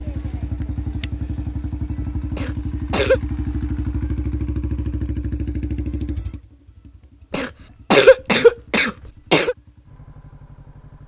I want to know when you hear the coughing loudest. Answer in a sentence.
The loudest moment of the coughing is at 8 seconds.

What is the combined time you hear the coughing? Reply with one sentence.
The coughing can be heard for 3 seconds in total.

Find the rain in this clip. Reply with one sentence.
You can't hear the rain here.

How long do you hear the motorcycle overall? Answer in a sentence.
The motorcycle can be heard for 11 seconds in total.